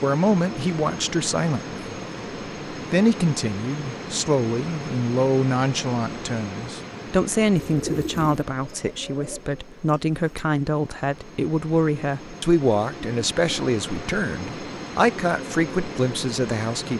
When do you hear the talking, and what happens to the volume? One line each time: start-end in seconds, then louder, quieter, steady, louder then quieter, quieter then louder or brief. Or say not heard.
0.0-1.8 brief
2.9-16.9 steady.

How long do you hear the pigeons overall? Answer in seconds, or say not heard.
3 s.